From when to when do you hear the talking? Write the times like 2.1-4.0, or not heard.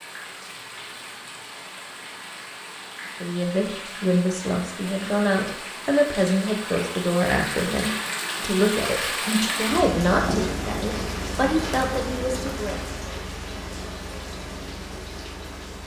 3.2-12.8.